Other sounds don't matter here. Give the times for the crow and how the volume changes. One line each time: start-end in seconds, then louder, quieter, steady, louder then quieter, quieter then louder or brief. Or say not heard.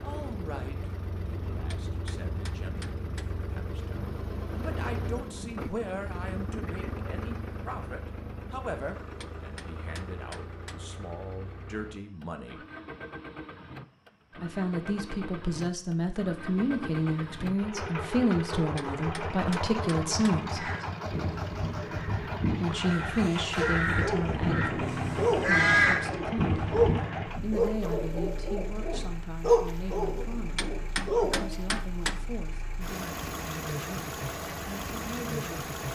20.6-27.2 louder.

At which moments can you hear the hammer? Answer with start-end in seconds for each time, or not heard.
1.7-3.3, 9.2-10.8, 18.8-20.4, 30.6-32.2.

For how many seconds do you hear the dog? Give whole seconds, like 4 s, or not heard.
8 s.